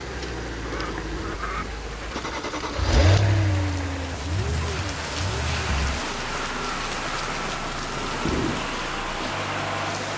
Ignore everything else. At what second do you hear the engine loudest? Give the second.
3 s.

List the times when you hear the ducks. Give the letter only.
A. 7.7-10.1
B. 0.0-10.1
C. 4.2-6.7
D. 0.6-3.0
D.